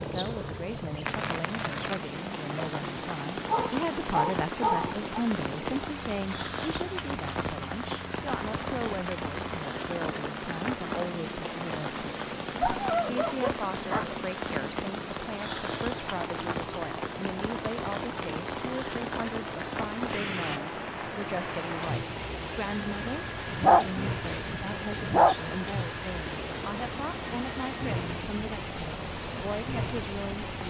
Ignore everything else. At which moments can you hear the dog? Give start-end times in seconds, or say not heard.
3.5-5.0, 12.6-14.2, 23.4-25.4.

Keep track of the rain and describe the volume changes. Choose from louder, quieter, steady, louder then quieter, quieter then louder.
steady.